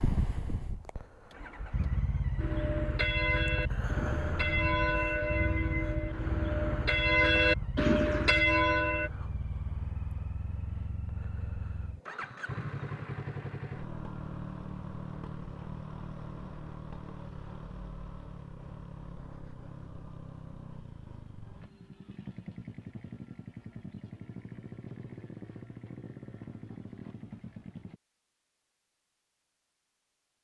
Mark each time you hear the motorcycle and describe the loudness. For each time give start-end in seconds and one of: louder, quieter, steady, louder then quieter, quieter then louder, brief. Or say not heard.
0.0-28.0 quieter.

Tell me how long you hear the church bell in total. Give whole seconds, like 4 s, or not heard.
7 s.